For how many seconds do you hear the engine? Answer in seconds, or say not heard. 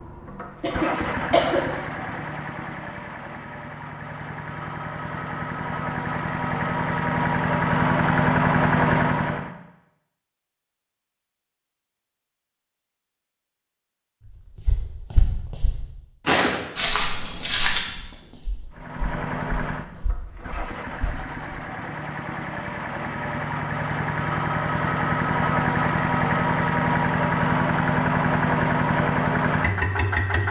21 s.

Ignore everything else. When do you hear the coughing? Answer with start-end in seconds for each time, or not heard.
0.2-1.6.